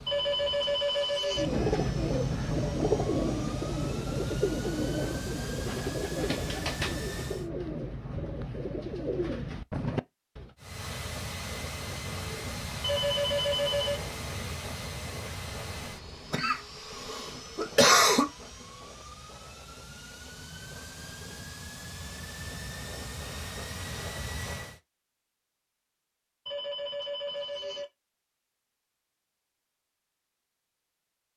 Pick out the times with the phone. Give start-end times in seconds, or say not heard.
0.1-1.5, 12.8-14.0, 26.4-27.9.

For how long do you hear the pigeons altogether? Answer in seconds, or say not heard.
9 s.